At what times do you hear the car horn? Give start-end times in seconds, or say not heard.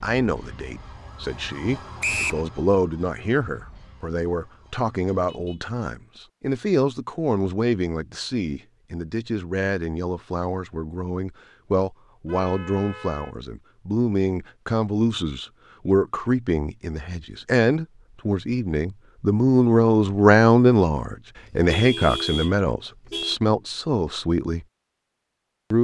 5.2-5.7, 12.2-13.3, 21.4-23.4.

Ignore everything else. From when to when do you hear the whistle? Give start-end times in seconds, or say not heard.
2.0-2.5.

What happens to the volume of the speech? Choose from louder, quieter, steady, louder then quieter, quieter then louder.
louder.